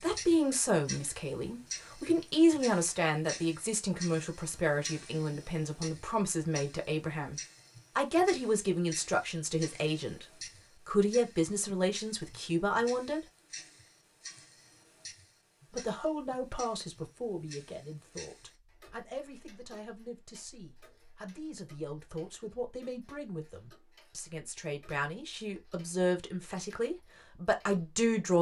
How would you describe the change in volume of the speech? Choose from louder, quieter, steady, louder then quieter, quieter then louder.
quieter then louder.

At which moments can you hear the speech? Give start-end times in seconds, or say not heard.
0.0-13.2, 15.7-28.3.